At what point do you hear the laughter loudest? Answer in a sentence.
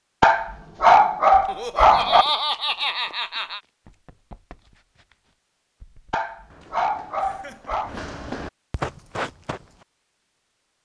The volume of the laughter peaks at 2 seconds.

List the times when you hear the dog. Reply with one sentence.
The dog can be heard from 0.2 to 2.2 s and from 6.1 to 8.0 s.